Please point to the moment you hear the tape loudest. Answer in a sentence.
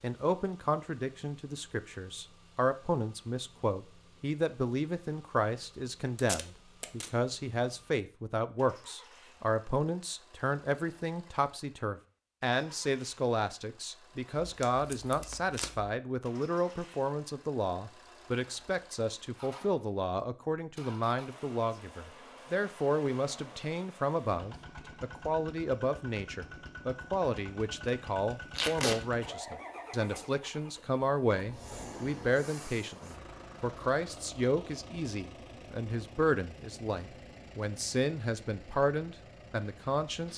The loudest moment of the tape is at 29 seconds.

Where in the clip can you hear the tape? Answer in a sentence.
You can hear the tape from 6.2 to 7.1 s, from 14.4 to 15.9 s and from 28.5 to 29.0 s.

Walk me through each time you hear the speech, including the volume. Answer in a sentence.
The speech can be heard from 0.0 to 40.3 s, at a steady volume.